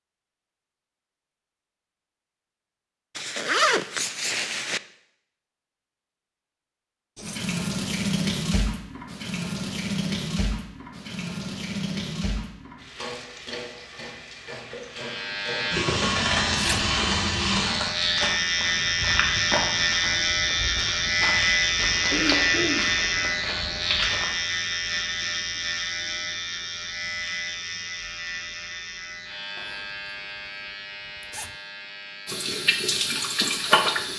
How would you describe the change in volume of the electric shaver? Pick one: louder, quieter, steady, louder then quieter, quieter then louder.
quieter.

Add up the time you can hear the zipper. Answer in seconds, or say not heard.
4 s.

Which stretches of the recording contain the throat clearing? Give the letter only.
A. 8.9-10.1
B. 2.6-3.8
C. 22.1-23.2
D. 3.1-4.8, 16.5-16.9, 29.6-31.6
C.